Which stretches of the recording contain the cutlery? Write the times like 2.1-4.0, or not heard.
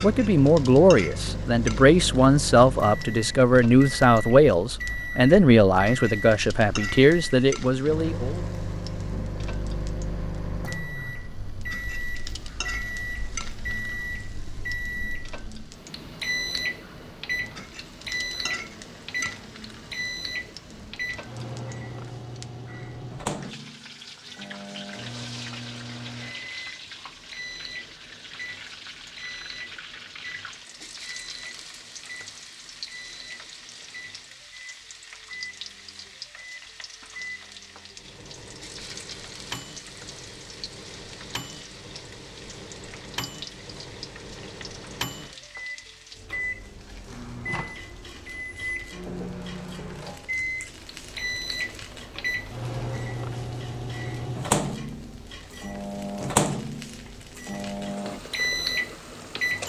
not heard.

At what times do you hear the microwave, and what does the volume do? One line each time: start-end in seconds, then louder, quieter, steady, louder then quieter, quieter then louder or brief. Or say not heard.
0.0-59.6 quieter then louder.